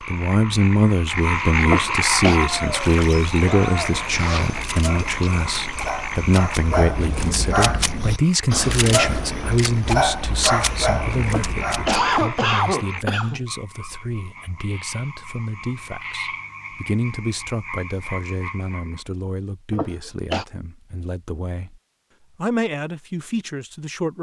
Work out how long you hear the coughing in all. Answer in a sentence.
The coughing can be heard for 4 seconds in total.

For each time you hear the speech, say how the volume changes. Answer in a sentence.
The speech can be heard from 0.0 to 24.1 s, getting quieter.